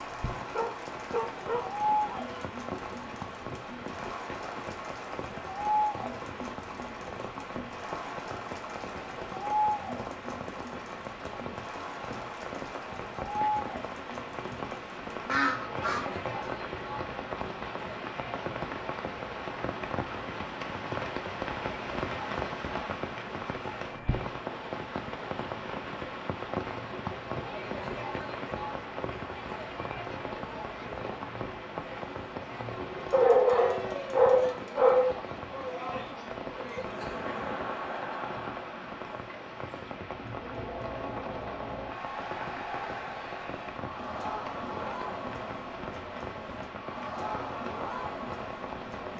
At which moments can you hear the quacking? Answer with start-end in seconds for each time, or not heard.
15.2-16.5.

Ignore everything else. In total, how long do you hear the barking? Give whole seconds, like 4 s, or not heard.
4 s.